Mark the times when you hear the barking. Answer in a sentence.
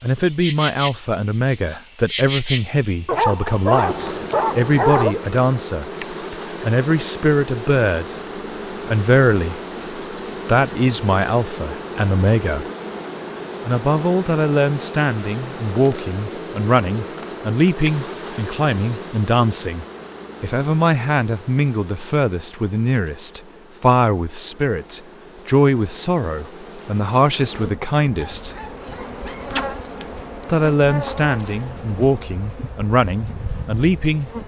The barking can be heard from 3.0 to 5.2 s and from 28.2 to 29.6 s.